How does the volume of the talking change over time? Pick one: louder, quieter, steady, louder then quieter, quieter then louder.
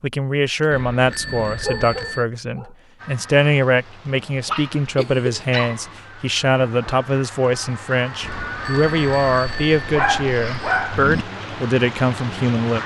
steady.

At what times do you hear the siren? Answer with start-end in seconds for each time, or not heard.
not heard.